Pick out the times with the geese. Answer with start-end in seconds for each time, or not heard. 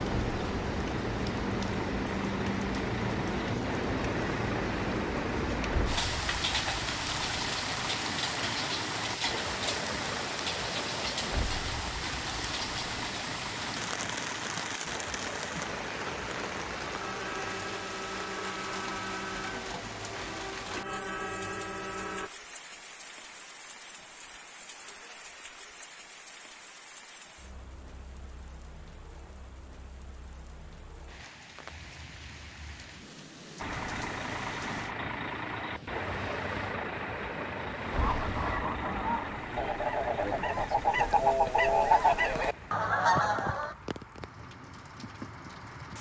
38.0-43.8.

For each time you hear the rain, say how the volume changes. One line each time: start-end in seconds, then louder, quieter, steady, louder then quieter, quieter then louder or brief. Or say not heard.
0.0-45.9 quieter.